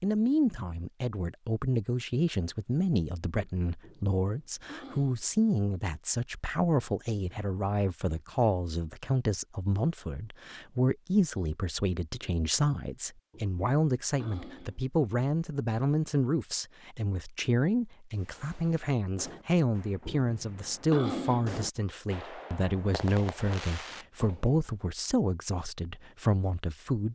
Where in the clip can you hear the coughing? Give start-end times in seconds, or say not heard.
3.8-5.2, 13.3-14.8, 20.1-21.6.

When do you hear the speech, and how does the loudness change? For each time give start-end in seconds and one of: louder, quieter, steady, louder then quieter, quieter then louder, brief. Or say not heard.
0.0-27.0 steady.